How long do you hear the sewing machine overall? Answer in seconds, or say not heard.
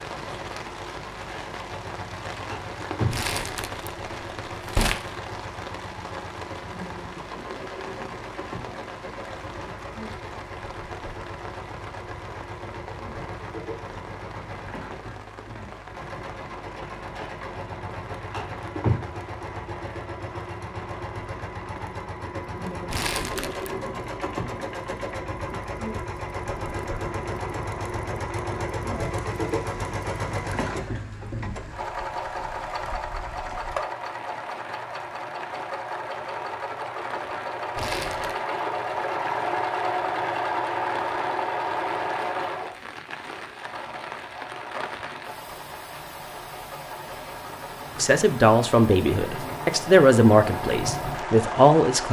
52 s.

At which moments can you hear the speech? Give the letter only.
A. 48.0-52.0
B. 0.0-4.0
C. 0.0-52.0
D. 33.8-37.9
A.